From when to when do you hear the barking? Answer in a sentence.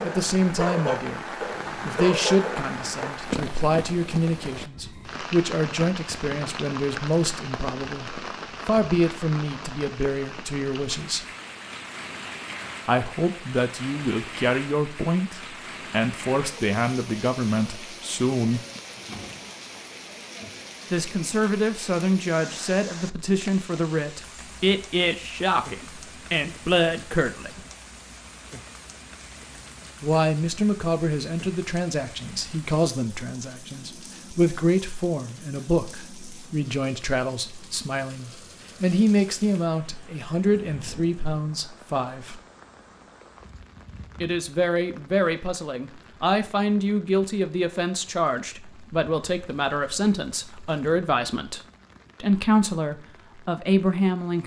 The barking can be heard from 0.0 to 3.1 s.